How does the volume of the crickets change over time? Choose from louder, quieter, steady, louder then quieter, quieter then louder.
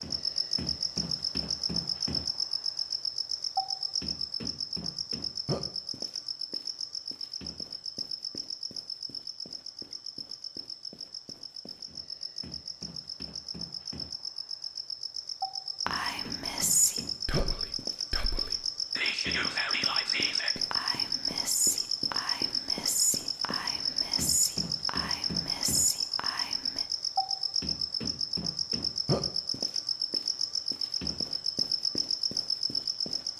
quieter then louder.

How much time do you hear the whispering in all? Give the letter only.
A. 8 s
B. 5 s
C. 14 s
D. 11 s
D.